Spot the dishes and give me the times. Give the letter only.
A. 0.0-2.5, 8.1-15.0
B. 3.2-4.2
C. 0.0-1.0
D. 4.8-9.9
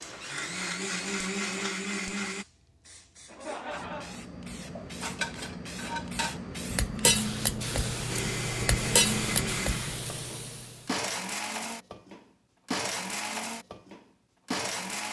D.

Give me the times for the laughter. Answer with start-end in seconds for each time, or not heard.
3.2-4.2.